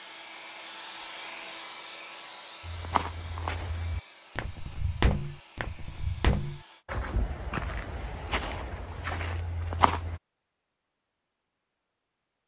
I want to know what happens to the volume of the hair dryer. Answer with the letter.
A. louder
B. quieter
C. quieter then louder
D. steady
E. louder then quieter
B.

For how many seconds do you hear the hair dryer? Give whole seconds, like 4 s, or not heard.
7 s.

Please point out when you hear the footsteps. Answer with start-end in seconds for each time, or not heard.
2.6-10.2.